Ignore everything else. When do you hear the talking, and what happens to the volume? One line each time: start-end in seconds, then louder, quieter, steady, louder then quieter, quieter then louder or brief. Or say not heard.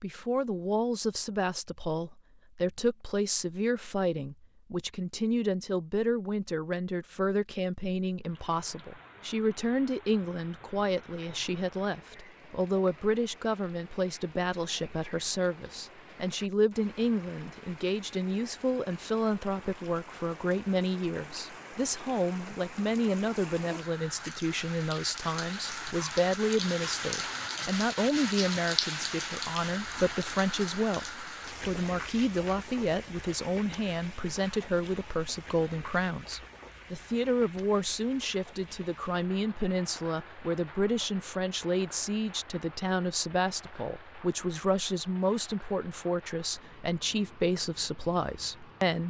0.0-49.0 steady.